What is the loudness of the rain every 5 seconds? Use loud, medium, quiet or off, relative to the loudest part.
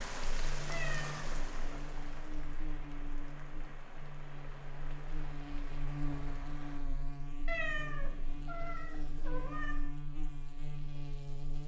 loud, medium, off.